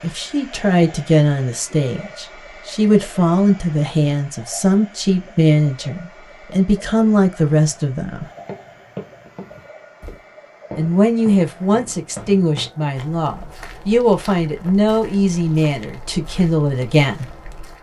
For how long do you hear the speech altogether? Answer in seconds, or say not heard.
15 s.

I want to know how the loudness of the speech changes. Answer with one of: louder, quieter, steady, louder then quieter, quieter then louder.
steady.